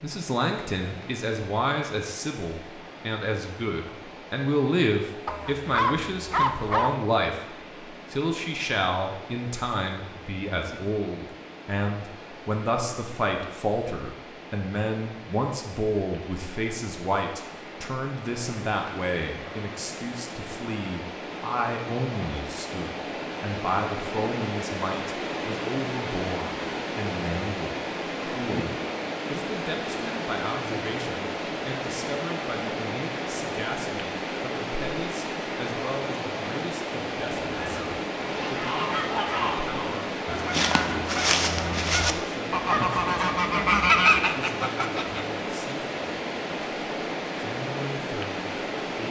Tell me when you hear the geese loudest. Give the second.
44 s.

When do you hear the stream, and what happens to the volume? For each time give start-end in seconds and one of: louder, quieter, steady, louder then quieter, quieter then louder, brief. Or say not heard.
0.0-49.0 louder.